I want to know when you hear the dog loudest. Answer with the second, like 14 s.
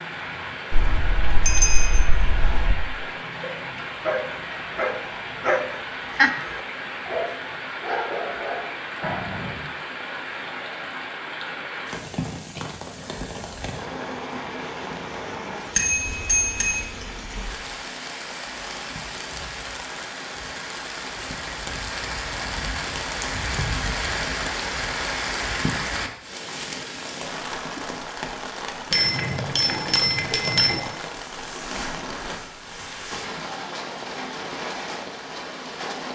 6 s.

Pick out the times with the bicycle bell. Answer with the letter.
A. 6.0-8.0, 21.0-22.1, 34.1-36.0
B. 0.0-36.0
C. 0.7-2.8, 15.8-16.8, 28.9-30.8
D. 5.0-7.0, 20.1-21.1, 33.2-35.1
C.